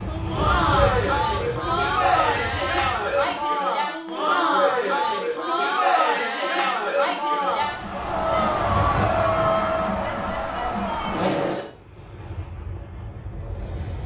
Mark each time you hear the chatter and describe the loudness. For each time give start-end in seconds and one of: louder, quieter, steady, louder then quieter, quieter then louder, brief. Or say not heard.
0.1-11.7 steady.